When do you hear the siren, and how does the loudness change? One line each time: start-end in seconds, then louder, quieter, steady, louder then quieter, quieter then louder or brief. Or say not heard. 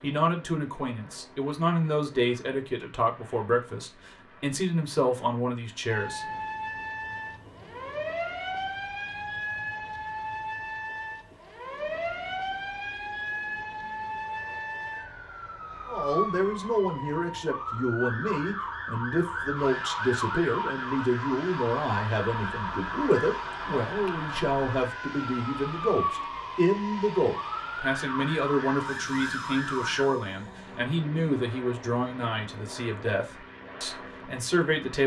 5.8-30.1 steady.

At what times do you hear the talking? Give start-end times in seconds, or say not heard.
0.0-6.2, 15.8-35.0.